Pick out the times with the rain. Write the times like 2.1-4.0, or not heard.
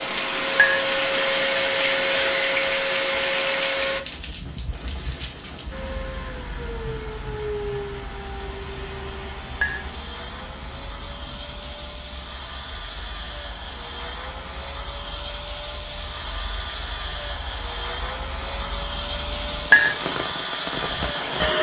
0.0-21.5.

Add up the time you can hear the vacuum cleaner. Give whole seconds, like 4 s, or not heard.
20 s.